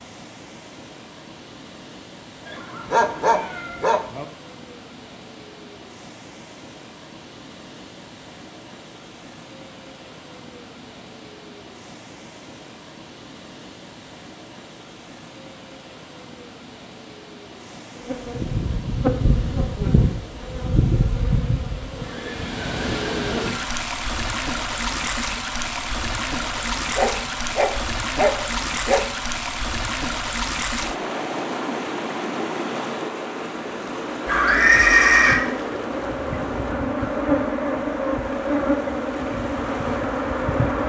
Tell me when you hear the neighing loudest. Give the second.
35 s.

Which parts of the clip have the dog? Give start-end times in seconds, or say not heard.
2.9-4.2, 26.9-29.1.